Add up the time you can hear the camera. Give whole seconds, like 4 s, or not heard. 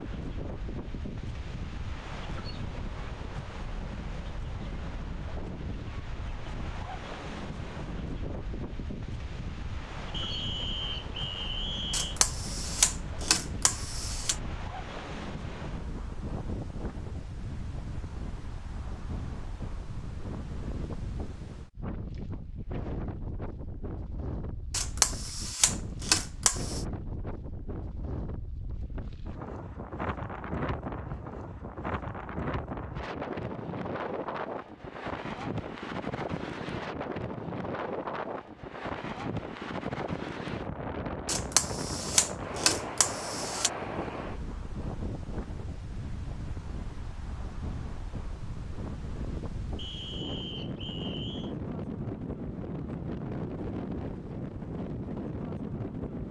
7 s.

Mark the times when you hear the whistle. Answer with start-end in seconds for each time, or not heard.
10.1-12.2, 49.8-51.5.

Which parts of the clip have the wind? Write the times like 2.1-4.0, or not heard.
0.0-56.2.